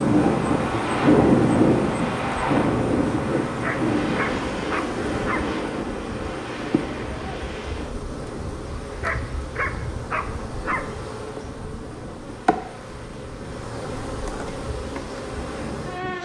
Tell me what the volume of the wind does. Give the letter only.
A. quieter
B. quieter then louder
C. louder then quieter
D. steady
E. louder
A.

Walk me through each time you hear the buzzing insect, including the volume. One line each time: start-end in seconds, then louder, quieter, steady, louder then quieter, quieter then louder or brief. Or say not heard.
0.0-16.1 steady.